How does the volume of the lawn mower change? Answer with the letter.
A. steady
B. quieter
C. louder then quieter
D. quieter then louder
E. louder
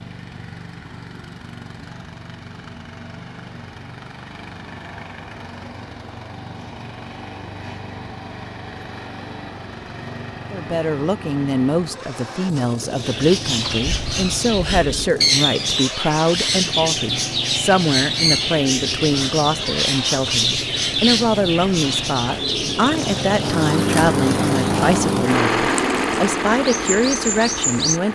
E.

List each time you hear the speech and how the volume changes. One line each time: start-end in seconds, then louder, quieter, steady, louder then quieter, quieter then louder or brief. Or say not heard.
10.5-28.1 steady.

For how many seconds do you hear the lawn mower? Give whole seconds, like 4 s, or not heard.
28 s.